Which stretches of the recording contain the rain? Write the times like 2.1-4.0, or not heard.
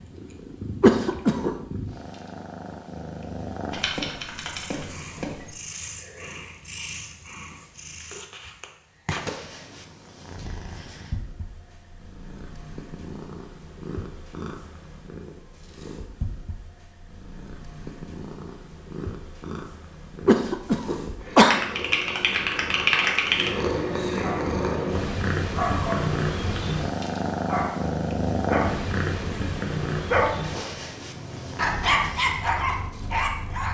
not heard.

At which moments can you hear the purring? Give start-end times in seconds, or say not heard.
0.0-33.6.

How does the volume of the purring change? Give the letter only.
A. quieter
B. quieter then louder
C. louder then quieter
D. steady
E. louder
E.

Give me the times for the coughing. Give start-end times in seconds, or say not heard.
0.8-1.6, 20.2-21.6.